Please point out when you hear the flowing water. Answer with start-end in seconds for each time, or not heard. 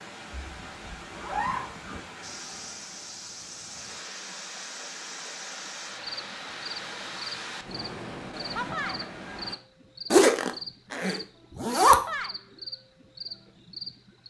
0.0-9.6.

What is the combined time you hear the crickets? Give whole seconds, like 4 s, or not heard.
12 s.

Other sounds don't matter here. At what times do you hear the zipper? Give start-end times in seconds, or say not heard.
0.4-2.0, 10.1-11.9.